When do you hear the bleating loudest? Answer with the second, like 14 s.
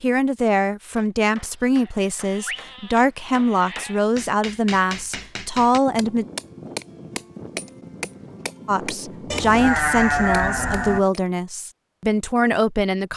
10 s.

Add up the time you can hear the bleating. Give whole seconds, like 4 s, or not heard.
4 s.